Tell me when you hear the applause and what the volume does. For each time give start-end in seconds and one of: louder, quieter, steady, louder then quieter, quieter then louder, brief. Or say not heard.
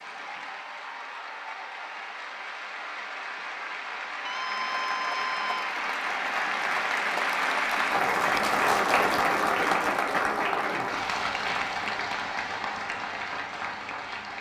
0.0-14.3 louder then quieter.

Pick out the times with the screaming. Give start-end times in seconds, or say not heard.
4.2-5.7.